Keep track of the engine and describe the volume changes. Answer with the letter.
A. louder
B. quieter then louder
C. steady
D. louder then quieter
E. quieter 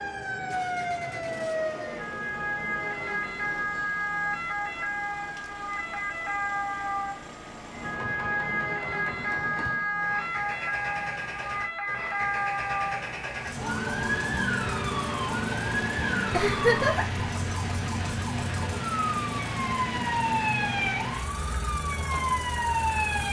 A.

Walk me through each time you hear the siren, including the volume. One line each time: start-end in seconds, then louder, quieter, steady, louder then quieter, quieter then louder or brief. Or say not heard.
0.0-23.2 steady.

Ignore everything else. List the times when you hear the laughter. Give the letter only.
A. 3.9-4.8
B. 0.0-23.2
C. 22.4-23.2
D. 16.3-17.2
D.